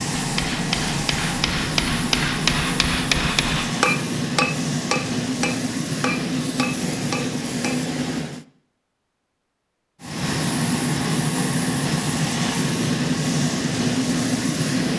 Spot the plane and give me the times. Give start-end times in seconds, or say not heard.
0.0-8.4, 10.0-14.9.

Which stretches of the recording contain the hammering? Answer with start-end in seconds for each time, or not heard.
0.1-7.8.